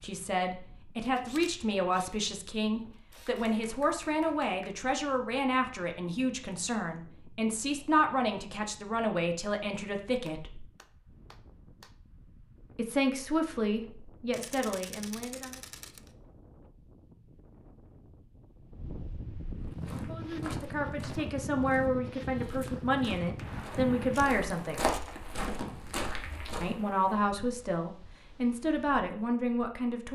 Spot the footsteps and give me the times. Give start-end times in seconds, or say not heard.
19.6-26.8.